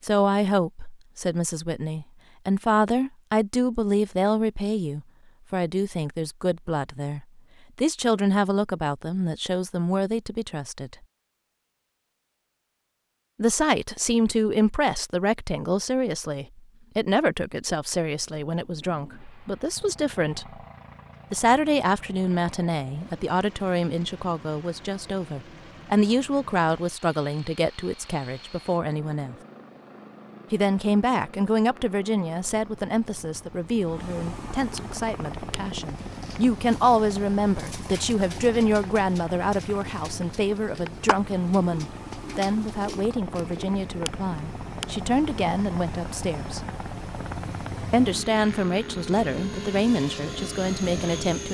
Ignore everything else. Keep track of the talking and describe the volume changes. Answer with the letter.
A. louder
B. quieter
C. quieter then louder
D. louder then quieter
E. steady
E.